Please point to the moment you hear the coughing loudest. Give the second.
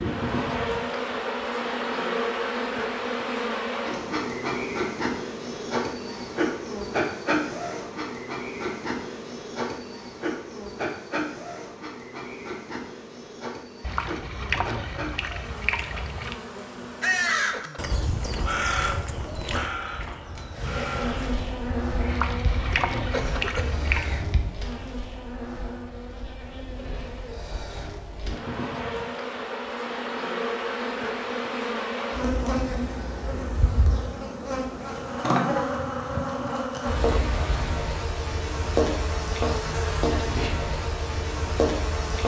23 s.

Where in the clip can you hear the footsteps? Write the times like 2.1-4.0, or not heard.
not heard.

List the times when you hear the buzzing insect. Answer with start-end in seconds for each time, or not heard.
0.0-17.6, 20.5-42.2.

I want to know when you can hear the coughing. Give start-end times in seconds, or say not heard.
17.1-17.9, 22.7-23.9.